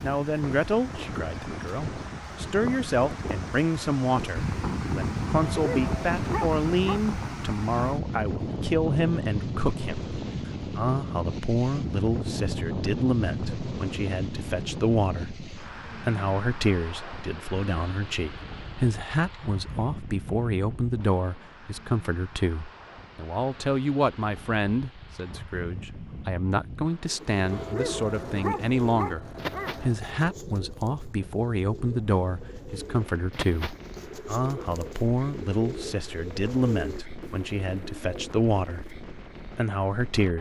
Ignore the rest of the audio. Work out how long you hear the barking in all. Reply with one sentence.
The barking can be heard for 4 seconds in total.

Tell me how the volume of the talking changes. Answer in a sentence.
The volume of the talking stays about the same.